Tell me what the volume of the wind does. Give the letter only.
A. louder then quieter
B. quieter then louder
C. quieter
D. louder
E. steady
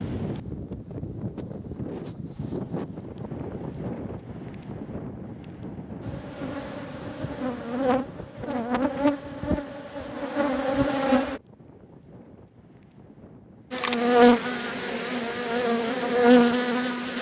C.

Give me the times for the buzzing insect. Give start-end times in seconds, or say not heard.
6.0-11.4, 13.7-17.1.